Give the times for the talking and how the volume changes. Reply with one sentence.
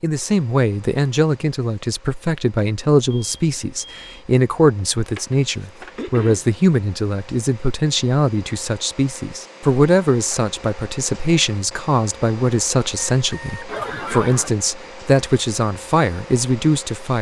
The talking can be heard from 0.0 to 17.1 s, at a steady volume.